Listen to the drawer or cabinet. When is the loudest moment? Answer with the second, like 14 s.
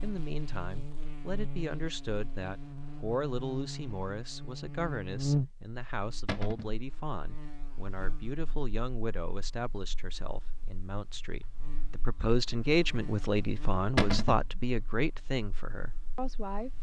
14 s.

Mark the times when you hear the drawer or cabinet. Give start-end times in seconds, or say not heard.
6.2-6.8, 13.9-14.4.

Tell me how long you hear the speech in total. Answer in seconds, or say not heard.
17 s.